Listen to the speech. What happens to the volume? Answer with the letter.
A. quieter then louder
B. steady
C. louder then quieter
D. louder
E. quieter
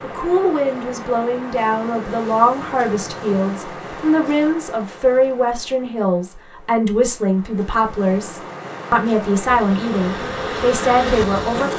B.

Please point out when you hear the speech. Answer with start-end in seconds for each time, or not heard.
0.0-11.7.